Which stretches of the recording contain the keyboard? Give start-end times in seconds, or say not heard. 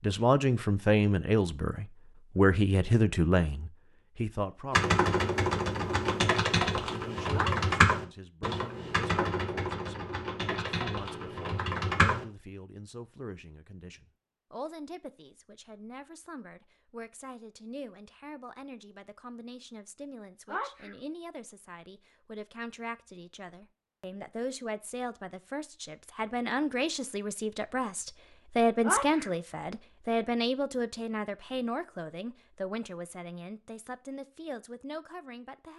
4.7-12.2.